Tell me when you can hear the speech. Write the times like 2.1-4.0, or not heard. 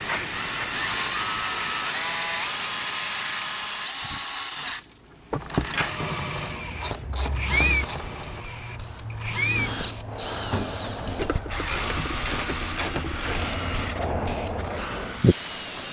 not heard.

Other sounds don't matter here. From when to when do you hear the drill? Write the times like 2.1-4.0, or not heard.
0.0-15.8.